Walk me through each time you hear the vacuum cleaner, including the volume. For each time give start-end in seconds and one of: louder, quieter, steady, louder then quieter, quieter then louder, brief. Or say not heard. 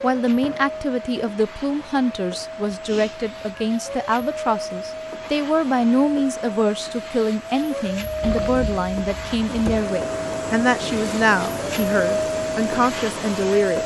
0.0-13.8 louder.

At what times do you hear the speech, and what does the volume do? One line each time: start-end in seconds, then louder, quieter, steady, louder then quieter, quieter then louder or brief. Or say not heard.
0.0-13.8 steady.